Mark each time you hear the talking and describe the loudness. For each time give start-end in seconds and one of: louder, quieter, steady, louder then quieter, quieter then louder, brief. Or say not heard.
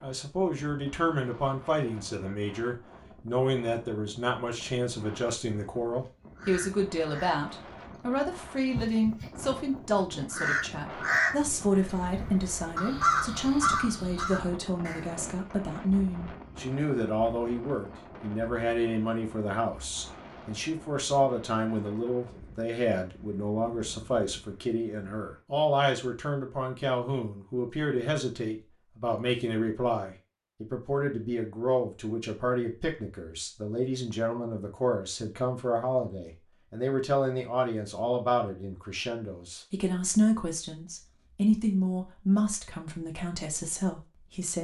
0.0-44.6 steady.